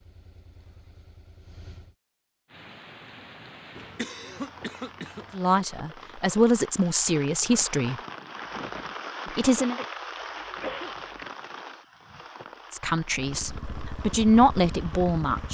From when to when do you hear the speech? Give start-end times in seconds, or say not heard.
5.3-8.0, 9.3-9.8, 12.7-15.4.